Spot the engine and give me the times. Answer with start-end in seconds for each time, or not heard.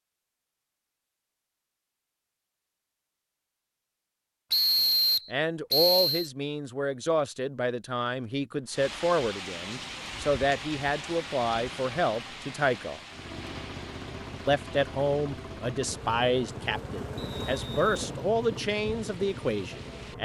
13.1-20.2.